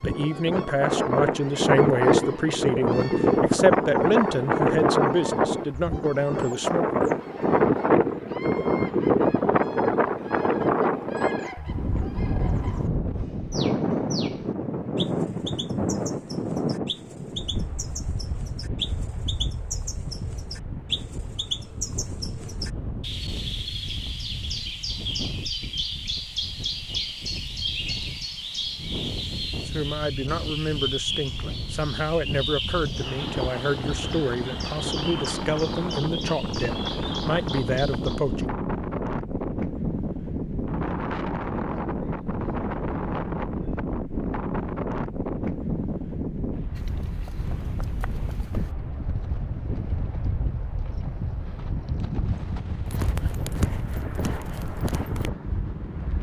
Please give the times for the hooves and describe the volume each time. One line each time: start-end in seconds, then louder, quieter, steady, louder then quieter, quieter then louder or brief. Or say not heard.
46.8-55.3 louder.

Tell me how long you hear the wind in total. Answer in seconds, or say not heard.
56 s.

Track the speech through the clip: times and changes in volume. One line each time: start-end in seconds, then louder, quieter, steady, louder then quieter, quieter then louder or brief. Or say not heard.
0.0-7.0 steady
29.6-38.6 steady.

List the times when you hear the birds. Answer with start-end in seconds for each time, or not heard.
0.0-38.5.